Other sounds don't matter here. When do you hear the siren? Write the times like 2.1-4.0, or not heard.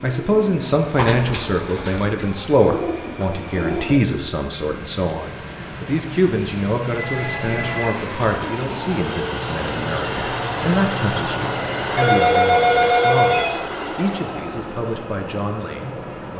not heard.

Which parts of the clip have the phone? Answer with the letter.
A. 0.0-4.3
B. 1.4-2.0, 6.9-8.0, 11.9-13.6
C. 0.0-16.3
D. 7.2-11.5
B.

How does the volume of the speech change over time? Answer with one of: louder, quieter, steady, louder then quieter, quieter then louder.
quieter.